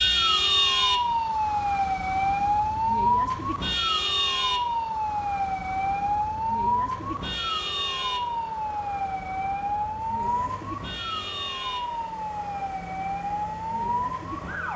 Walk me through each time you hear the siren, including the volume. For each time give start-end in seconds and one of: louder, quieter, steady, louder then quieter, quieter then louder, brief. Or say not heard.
0.0-14.7 quieter.